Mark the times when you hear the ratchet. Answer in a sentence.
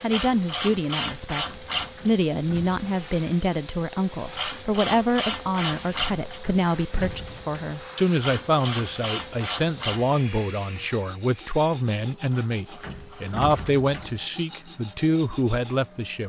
You can hear the ratchet from 0.1 to 2.1 s, from 4.3 to 6.4 s, from 8.2 to 10.1 s and from 12.3 to 14.2 s.